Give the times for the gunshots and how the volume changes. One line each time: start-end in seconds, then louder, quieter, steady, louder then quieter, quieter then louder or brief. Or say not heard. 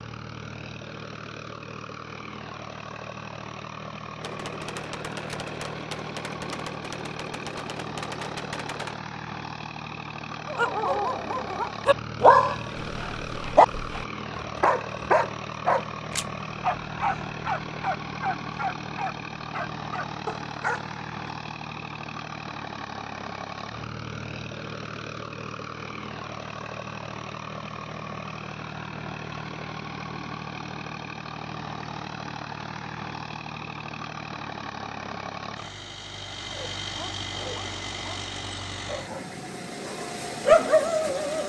4.2-9.1 steady.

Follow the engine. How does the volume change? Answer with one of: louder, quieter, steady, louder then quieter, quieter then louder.
steady.